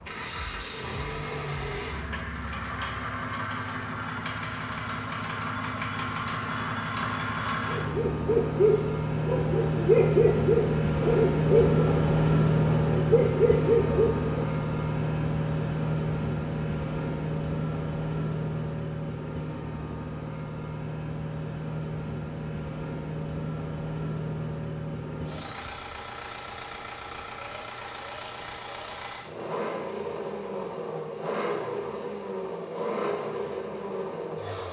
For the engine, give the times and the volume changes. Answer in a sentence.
The engine can be heard from 0.0 to 34.6 s, getting louder then quieter.